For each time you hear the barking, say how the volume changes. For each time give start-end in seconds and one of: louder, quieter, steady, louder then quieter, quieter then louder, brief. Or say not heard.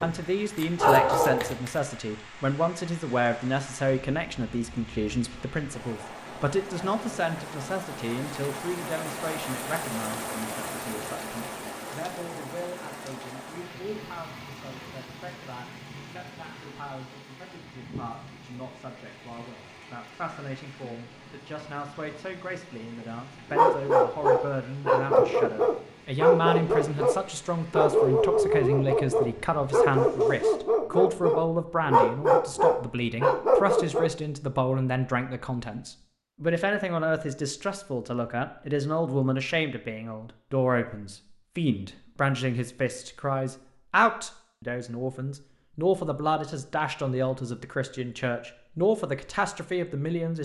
0.0-1.8 brief
23.5-34.1 steady.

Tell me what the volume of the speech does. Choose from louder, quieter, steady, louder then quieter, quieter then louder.
quieter then louder.